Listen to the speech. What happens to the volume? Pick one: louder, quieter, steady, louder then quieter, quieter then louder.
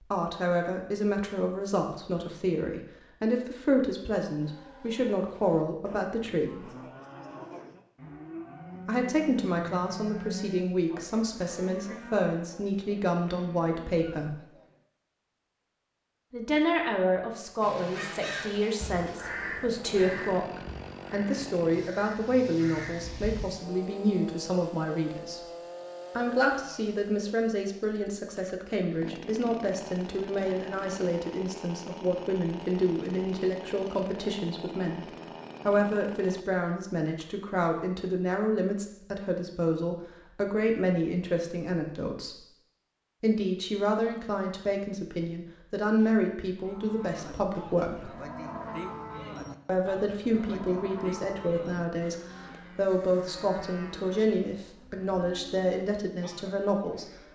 steady.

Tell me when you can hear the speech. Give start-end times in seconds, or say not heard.
0.0-6.7, 8.8-14.4, 16.3-25.4, 26.1-42.4, 43.2-48.1, 49.6-57.0.